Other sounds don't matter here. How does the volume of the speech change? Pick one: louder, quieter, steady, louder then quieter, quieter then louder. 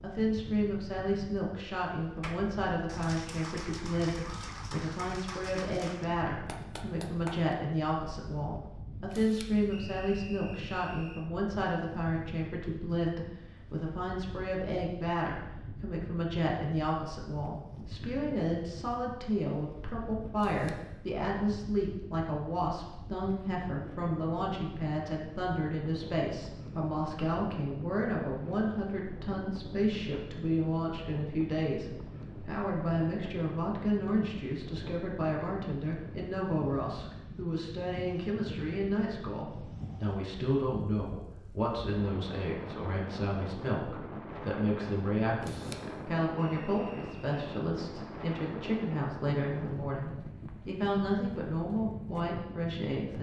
steady.